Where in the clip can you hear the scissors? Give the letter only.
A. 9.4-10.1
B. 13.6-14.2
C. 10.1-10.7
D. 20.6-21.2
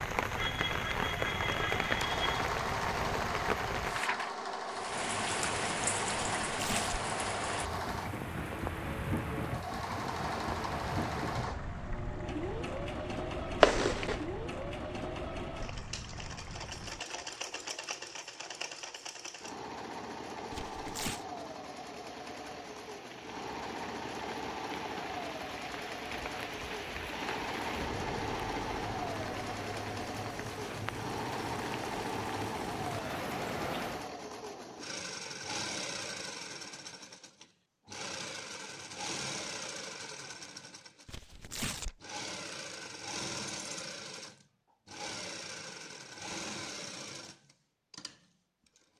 B.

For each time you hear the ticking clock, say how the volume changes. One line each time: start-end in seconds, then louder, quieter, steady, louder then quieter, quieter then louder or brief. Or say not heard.
not heard.